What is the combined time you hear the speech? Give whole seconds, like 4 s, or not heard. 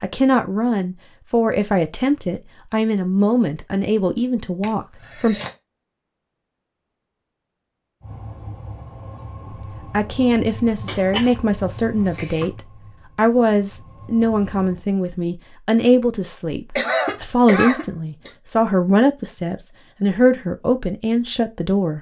17 s.